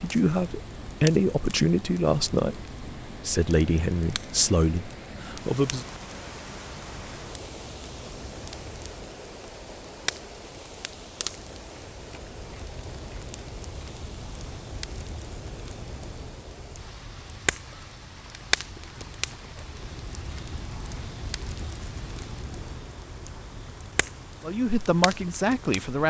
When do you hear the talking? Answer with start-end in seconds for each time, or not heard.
0.0-5.8, 24.4-26.0.